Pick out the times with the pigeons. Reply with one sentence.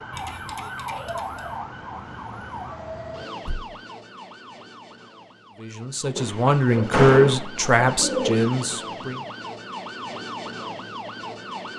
The pigeons can be heard from 0.1 to 1.6 s and from 6.2 to 8.5 s.